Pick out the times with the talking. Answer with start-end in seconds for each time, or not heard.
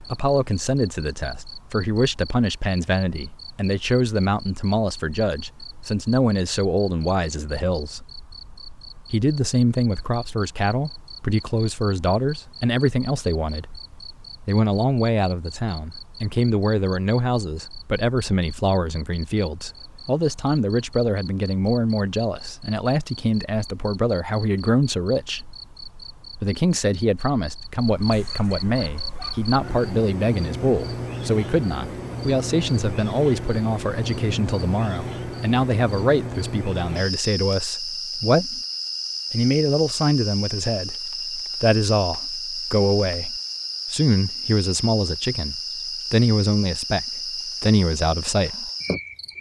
0.0-8.1, 9.1-13.7, 14.4-25.4, 26.4-38.6, 39.3-48.7.